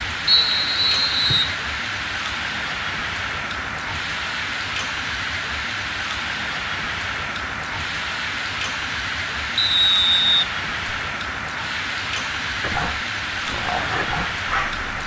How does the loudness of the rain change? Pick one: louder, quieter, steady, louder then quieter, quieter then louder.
steady.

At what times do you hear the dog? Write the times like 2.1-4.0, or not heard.
12.6-14.8.